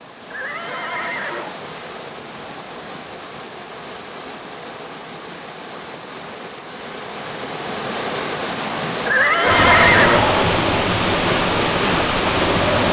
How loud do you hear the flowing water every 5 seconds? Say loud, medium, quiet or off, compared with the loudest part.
quiet, medium, loud.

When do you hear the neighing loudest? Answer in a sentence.
The loudest moment of the neighing is at 10 seconds.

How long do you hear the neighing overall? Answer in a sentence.
The neighing can be heard for 3 seconds in total.